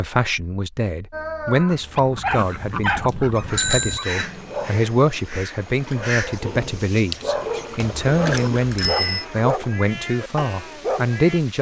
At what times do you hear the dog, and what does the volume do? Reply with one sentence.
The dog can be heard from 1.1 to 11.4 s, getting quieter then louder.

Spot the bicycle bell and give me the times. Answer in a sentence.
You can hear the bicycle bell from 2.4 to 4.3 s and from 7.8 to 9.2 s.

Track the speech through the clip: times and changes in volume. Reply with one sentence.
You can hear the speech from 0.0 to 11.5 s, at a steady volume.